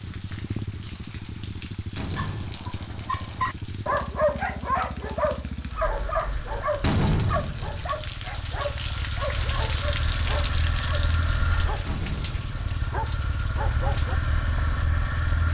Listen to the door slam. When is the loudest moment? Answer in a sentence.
The volume of the door slam peaks at 7 seconds.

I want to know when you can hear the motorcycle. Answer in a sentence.
You can hear the motorcycle from 0.0 to 15.4 s.